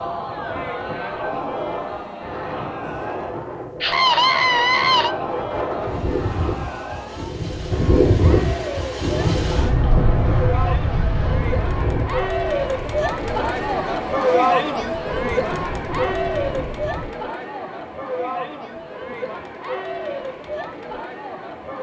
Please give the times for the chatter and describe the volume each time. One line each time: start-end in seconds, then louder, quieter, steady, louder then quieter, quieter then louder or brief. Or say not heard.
0.0-21.7 louder then quieter.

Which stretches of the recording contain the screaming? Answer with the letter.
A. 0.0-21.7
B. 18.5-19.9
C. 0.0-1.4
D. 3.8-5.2
D.